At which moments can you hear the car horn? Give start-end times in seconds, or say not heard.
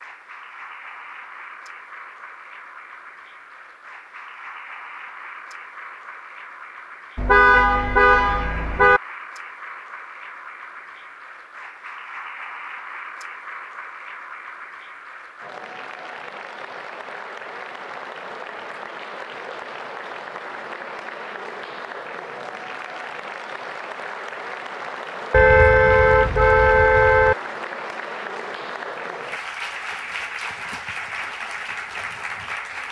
7.2-9.0, 25.3-27.4.